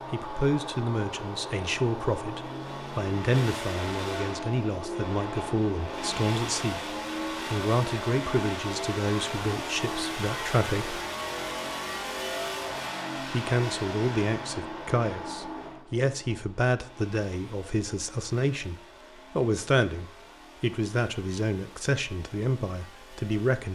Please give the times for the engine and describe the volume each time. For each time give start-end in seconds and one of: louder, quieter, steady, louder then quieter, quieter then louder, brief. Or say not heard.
0.0-23.6 quieter.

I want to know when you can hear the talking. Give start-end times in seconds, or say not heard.
0.1-11.0, 13.2-23.6.